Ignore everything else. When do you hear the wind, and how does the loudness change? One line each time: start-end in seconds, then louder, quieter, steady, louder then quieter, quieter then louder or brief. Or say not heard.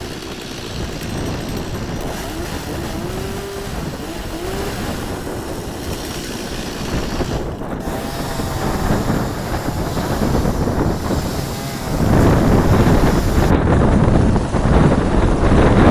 0.0-15.8 louder.